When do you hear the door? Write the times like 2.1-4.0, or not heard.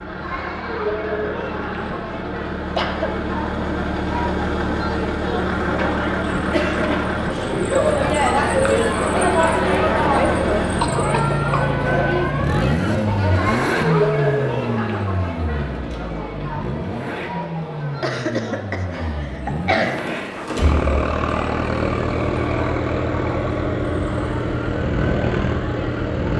20.1-20.9.